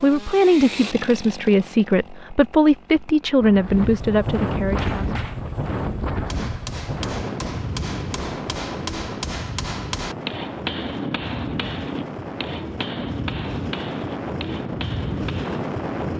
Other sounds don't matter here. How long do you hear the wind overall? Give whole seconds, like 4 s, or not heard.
13 s.